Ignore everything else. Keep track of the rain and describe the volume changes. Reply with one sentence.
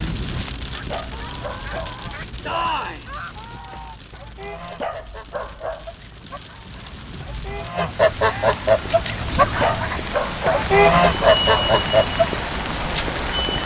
The volume of the rain goes down, then up.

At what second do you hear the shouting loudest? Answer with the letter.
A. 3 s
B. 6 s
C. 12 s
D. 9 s
A.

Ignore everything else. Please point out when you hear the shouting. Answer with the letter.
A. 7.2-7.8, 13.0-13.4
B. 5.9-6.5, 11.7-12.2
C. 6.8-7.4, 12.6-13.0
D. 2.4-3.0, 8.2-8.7
D.